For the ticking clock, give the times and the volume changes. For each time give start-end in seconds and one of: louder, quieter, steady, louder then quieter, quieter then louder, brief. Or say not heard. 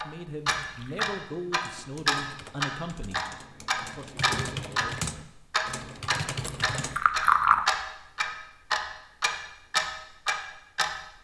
0.0-10.9 steady.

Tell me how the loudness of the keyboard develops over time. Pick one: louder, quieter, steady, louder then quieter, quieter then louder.
louder.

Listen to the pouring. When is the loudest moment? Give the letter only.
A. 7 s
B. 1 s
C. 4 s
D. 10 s
A.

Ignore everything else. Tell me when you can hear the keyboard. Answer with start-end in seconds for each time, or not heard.
1.6-7.0.